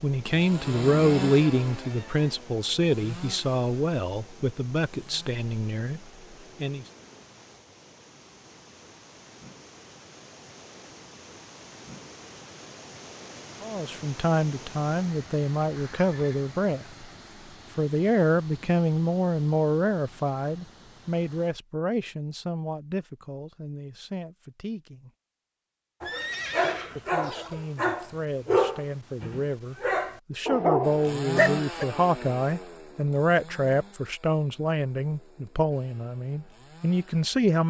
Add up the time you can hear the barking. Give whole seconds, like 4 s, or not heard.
6 s.